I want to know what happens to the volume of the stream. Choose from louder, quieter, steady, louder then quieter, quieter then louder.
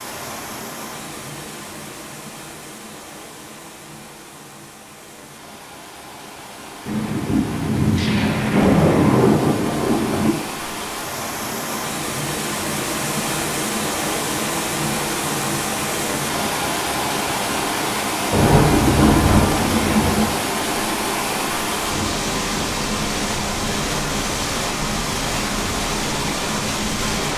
louder.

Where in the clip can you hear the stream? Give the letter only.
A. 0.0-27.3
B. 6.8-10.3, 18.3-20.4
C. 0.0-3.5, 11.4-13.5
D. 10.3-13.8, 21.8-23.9
A.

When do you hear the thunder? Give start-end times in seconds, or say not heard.
6.8-10.3, 18.3-20.4.